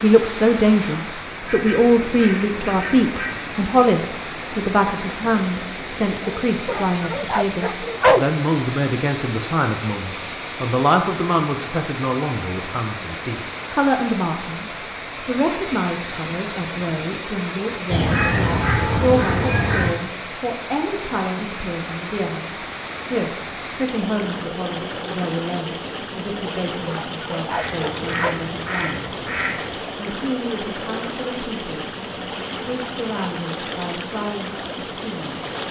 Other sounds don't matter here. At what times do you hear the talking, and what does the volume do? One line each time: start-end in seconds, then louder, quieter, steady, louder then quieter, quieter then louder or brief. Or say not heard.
0.0-29.1 quieter
29.8-31.9 brief
32.5-35.4 brief.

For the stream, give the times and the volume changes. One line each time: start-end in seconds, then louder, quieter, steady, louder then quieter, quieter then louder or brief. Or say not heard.
0.0-35.6 steady.